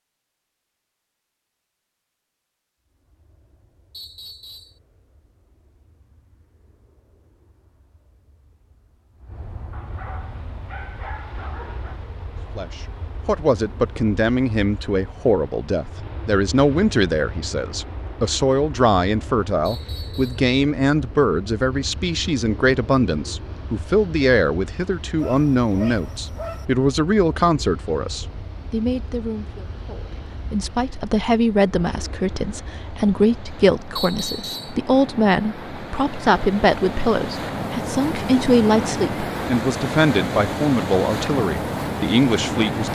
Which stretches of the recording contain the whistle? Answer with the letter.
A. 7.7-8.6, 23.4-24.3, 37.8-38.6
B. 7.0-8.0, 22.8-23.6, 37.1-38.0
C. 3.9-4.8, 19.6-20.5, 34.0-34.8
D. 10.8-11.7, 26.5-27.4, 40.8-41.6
C.